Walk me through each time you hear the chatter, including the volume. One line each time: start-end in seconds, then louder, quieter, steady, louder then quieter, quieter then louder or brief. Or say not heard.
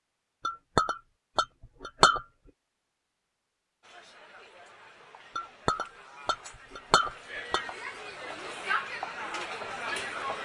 3.8-10.4 louder.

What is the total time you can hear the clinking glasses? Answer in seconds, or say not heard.
4 s.